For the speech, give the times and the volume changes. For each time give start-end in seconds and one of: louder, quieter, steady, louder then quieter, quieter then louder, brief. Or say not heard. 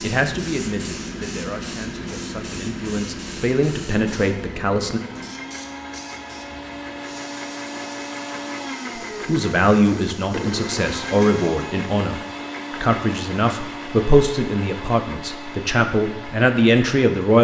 0.0-5.0 quieter then louder
9.2-17.3 steady.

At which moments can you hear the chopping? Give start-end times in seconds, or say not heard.
not heard.